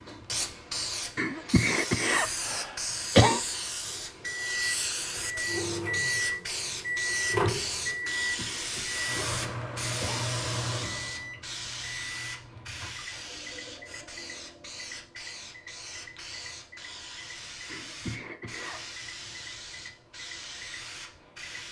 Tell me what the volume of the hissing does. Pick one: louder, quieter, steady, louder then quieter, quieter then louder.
quieter.